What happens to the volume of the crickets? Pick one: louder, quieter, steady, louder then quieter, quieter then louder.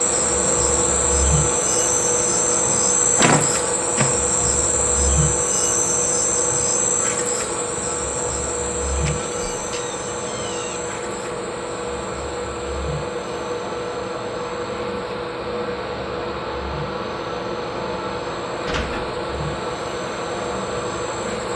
quieter.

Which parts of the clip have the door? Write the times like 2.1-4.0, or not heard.
3.1-4.2, 8.9-10.8, 18.6-19.1.